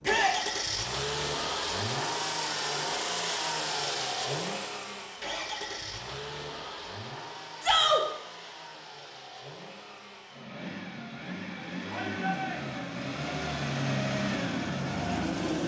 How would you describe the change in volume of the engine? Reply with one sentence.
The loudness of the engine goes down, then up.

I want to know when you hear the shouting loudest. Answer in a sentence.
The volume of the shouting peaks at 8 seconds.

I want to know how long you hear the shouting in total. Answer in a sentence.
You can hear the shouting for 2 seconds altogether.